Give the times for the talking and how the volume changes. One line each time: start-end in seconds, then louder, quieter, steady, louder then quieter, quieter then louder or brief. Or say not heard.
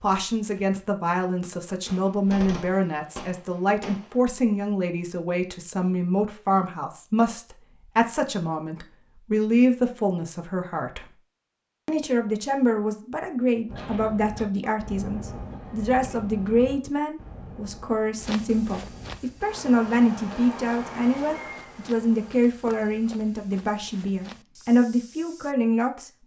0.0-11.2 steady
11.8-26.2 steady.